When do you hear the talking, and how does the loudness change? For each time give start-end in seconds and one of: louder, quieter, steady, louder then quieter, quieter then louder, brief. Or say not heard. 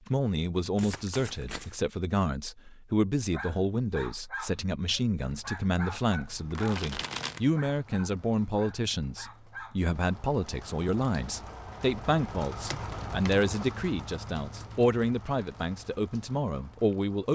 0.1-17.3 steady.